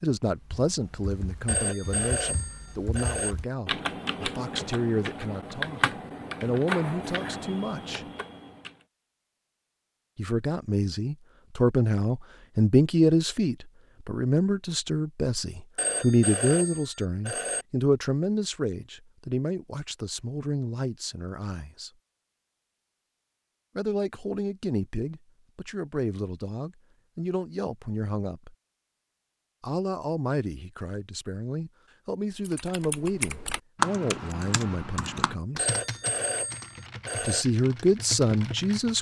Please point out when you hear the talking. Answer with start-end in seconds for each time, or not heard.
0.0-8.1, 10.2-21.9, 23.8-28.6, 29.6-35.7, 37.2-38.9.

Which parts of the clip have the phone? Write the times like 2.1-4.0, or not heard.
1.4-3.4, 15.8-17.6, 35.5-37.5.